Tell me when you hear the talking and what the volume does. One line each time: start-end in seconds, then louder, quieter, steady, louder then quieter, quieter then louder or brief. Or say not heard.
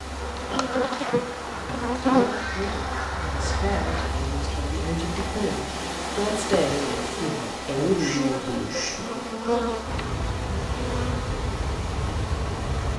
1.4-9.2 louder.